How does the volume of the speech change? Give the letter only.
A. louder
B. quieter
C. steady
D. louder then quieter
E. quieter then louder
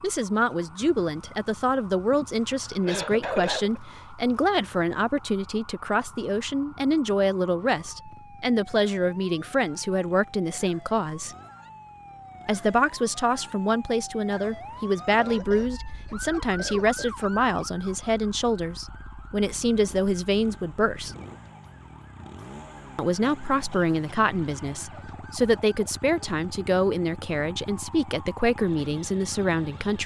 C.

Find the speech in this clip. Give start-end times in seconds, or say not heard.
0.0-11.3, 12.4-21.1, 22.9-30.0.